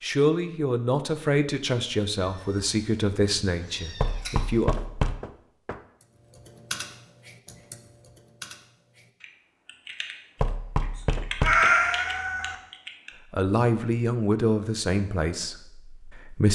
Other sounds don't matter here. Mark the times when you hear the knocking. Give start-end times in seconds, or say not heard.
4.0-5.8, 10.4-11.7.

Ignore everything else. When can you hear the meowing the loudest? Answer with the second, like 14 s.
12 s.